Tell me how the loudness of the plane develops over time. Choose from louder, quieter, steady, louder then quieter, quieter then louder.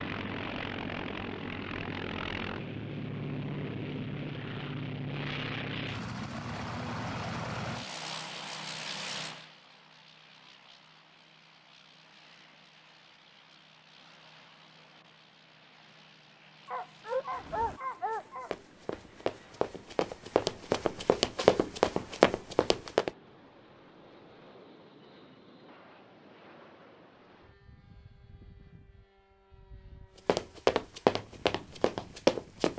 quieter.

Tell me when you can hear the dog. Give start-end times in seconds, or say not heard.
16.6-18.5.